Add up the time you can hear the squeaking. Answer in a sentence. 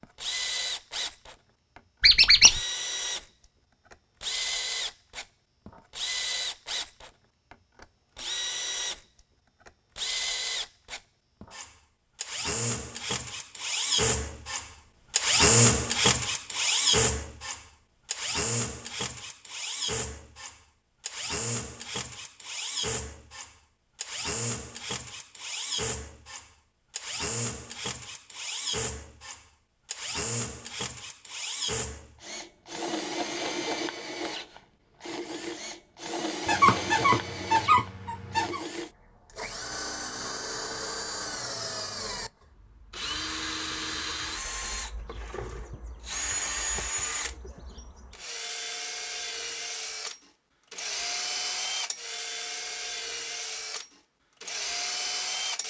The squeaking can be heard for 3 seconds in total.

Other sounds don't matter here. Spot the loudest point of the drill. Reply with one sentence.
The loudest moment of the drill is at 16 seconds.